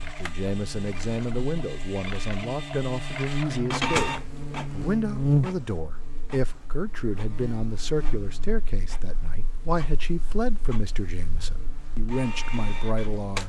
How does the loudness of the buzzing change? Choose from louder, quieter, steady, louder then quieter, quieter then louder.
louder then quieter.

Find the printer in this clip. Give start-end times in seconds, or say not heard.
0.0-13.4.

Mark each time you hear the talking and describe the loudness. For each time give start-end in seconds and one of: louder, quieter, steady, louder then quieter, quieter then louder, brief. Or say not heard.
0.0-13.4 steady.